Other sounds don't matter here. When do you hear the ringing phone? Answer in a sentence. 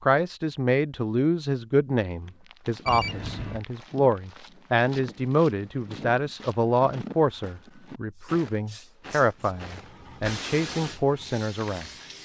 You can hear the ringing phone from 2.9 to 3.6 s.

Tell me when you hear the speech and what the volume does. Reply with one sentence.
The speech can be heard from 0.0 to 11.8 s, at a steady volume.